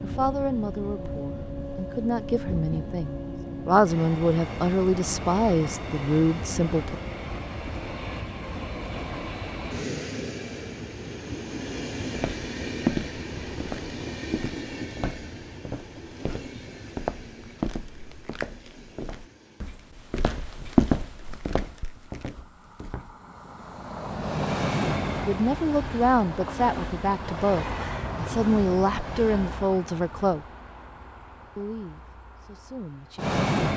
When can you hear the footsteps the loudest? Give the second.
21 s.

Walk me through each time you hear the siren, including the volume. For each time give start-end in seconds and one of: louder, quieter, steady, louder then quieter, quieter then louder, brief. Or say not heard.
not heard.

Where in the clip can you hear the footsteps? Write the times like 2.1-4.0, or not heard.
12.2-23.1.